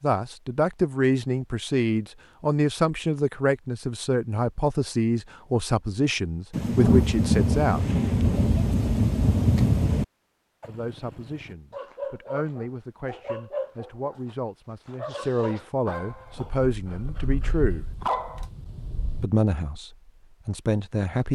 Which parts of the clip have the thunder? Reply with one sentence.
You can hear the thunder from 6.5 to 10.1 s.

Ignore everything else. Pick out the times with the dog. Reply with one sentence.
The dog can be heard from 10.6 to 19.2 s.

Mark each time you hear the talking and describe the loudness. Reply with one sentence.
The talking can be heard from 0.0 to 7.8 s, at a steady volume; from 10.7 to 17.9 s, getting louder; and briefly from 19.2 to 21.2 s.